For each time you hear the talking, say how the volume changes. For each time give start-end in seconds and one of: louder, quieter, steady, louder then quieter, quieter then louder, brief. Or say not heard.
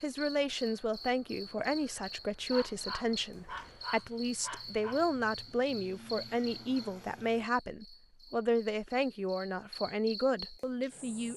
0.0-11.3 steady.